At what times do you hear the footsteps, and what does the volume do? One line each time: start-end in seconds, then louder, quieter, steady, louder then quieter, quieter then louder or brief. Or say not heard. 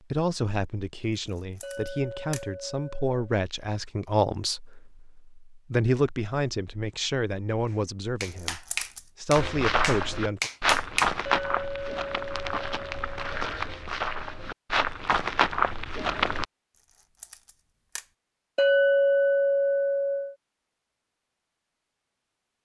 9.3-16.4 quieter then louder.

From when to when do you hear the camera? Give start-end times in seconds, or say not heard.
1.4-2.5, 8.2-9.1, 16.9-18.1.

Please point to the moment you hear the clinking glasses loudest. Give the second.
19 s.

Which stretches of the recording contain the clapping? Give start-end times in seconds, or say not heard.
7.7-11.1.